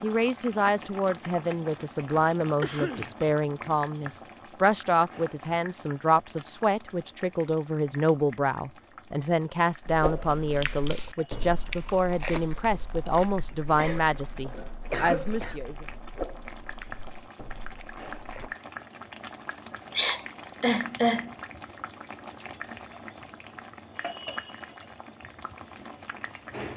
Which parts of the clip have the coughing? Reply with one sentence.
The coughing can be heard from 2.6 to 3.1 s, from 13.8 to 15.6 s and from 19.9 to 21.3 s.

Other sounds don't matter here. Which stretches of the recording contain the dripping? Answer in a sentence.
The dripping can't be heard in this clip.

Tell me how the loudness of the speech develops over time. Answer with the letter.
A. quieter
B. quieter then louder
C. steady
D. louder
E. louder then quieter
C.